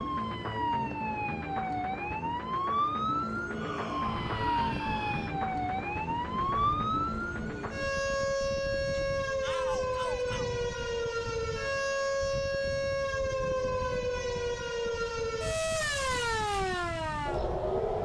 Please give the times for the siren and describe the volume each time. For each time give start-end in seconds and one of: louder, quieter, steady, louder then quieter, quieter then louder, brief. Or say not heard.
0.0-18.0 steady.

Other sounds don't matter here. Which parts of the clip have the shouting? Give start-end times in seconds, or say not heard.
3.5-5.3, 9.4-10.5.